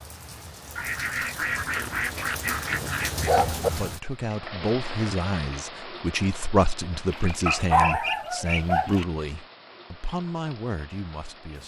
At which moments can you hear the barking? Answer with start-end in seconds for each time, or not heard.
1.8-3.7, 7.5-9.0.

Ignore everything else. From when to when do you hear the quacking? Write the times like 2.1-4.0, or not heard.
0.8-3.5, 7.1-9.1.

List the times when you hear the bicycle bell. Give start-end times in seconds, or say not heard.
not heard.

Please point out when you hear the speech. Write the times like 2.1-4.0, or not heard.
3.6-11.6.